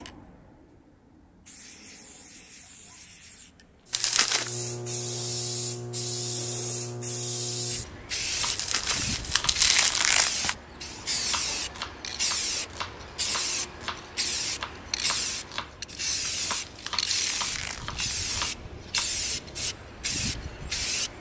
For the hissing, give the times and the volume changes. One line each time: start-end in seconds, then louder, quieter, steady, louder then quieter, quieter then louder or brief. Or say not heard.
0.0-21.1 louder.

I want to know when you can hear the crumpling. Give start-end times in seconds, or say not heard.
3.9-4.5, 8.4-10.6, 16.1-18.2.